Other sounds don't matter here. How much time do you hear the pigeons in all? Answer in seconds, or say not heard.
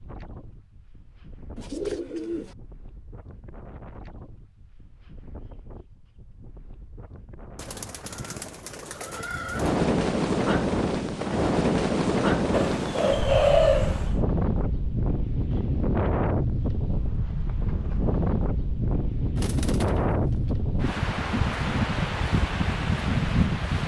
6 s.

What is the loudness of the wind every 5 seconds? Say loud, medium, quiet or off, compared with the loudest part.
quiet, medium, loud, loud, loud.